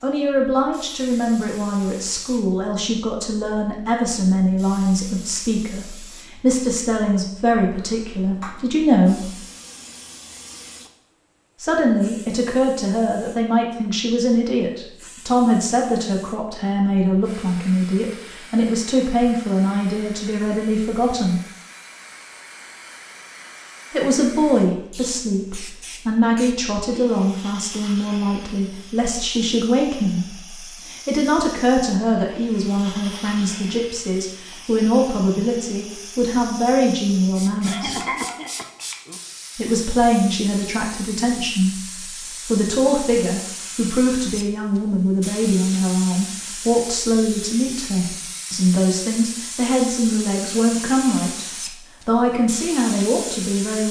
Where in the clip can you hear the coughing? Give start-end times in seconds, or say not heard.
37.6-39.2.